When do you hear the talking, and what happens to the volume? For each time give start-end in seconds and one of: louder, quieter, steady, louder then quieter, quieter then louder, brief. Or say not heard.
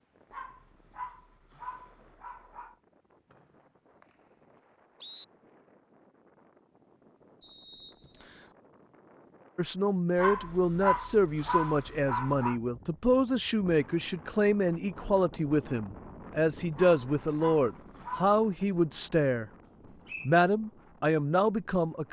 9.6-19.5 steady
20.2-22.0 brief.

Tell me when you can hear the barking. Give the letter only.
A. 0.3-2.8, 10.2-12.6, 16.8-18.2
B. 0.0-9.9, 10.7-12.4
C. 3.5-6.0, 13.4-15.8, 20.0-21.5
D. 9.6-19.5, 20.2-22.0
A.